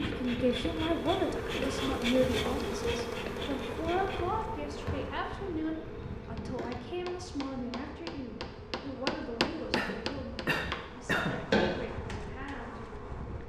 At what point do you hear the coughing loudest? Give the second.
11 s.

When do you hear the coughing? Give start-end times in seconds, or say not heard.
1.6-2.5, 9.8-11.4.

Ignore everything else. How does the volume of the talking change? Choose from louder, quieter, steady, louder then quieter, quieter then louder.
quieter.